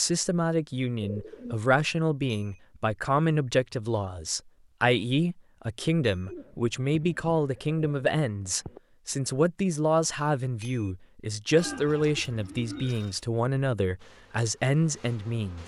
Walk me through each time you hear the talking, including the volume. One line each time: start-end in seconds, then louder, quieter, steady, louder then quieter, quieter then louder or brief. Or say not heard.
0.0-15.6 steady.